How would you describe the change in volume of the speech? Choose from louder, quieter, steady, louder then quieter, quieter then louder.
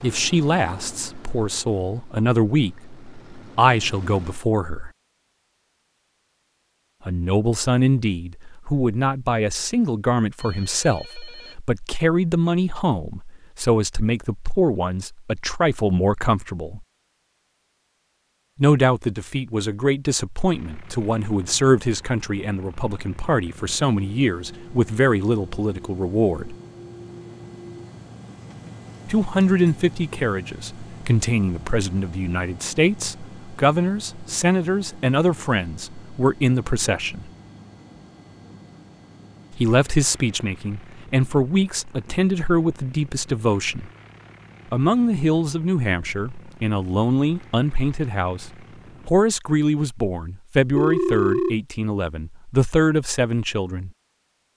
steady.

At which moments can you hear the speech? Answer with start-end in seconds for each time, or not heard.
0.0-4.9, 7.0-16.9, 18.6-26.6, 29.1-37.3, 39.5-43.9, 44.7-53.9.